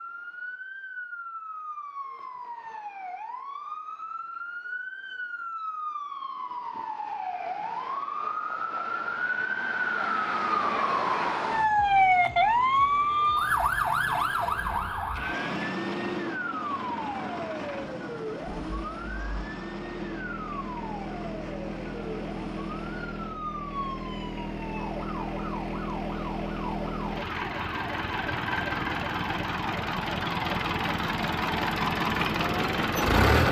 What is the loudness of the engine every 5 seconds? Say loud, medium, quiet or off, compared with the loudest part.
off, off, quiet, quiet, medium, medium, loud.